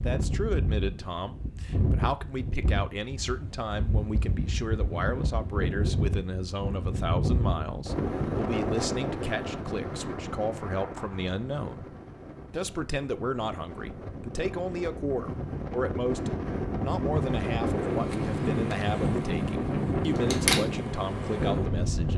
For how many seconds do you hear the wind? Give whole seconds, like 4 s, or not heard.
22 s.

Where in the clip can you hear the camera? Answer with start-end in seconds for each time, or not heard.
20.1-20.6.